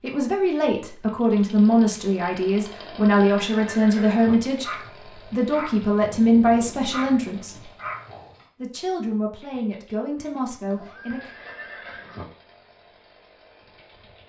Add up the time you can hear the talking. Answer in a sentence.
The talking can be heard for 10 seconds in total.